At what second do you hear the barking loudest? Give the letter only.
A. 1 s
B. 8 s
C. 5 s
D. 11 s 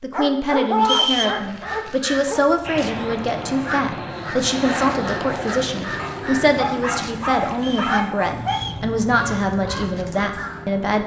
A.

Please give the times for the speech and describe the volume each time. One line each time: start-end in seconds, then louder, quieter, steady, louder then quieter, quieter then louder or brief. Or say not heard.
0.0-11.0 steady.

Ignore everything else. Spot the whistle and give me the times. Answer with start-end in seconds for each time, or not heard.
0.8-1.4, 7.5-8.8.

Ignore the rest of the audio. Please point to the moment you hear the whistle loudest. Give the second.
1 s.